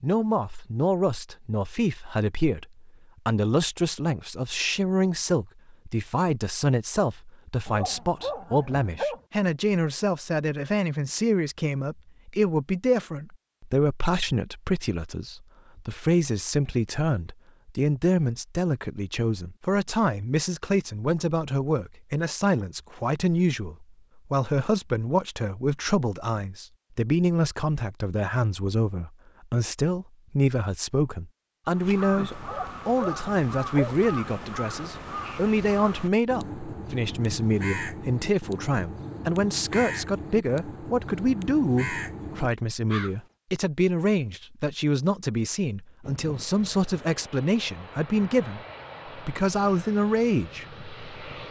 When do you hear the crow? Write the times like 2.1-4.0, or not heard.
31.6-43.2.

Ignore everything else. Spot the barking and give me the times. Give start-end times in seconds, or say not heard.
7.7-9.2, 32.4-34.0.